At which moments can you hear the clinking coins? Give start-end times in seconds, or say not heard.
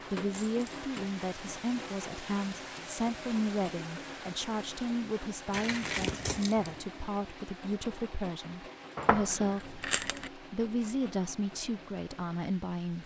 0.3-0.8, 5.5-6.7, 8.9-10.3.